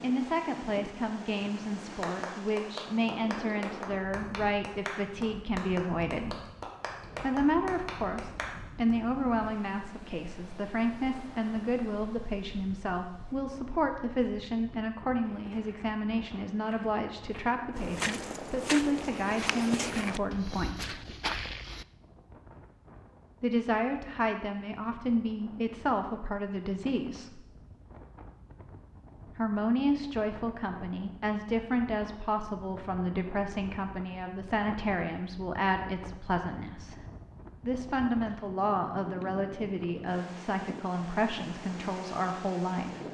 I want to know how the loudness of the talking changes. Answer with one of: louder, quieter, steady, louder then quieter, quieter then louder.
steady.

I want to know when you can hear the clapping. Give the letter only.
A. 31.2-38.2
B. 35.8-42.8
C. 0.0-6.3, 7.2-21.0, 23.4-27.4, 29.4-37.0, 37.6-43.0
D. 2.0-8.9
D.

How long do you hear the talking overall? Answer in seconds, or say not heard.
37 s.